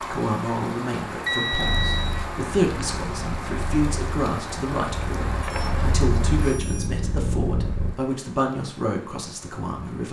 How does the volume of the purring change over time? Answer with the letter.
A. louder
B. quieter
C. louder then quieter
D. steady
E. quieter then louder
A.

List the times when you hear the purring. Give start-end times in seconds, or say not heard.
1.6-8.0.